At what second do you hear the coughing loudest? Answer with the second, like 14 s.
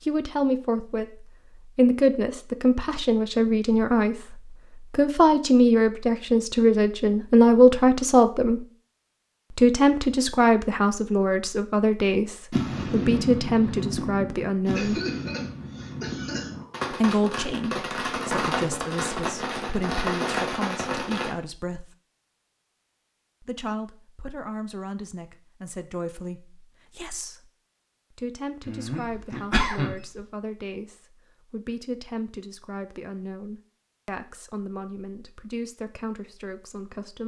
30 s.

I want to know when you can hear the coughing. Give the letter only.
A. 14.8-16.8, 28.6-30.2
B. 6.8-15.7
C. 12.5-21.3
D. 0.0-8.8
A.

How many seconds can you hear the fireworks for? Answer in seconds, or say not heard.
9 s.